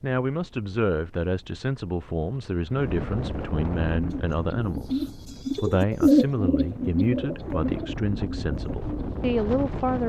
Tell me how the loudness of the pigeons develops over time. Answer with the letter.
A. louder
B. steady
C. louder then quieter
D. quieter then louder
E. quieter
C.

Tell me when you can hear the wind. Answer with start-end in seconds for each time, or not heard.
0.2-10.0.